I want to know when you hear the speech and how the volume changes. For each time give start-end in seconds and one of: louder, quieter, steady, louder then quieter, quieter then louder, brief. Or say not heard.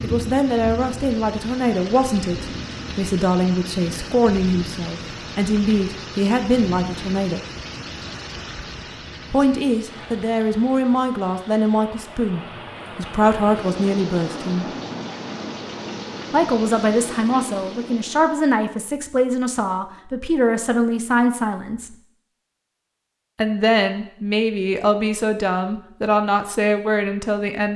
0.0-7.4 steady
9.3-14.8 steady
16.3-21.9 steady
23.4-27.7 steady.